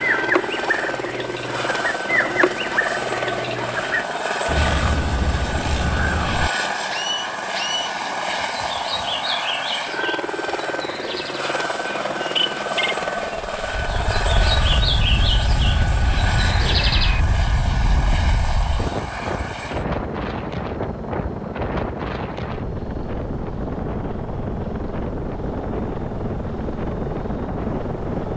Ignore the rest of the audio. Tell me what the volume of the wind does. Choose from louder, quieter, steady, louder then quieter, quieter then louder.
steady.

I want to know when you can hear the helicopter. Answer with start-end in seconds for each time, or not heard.
0.0-28.3.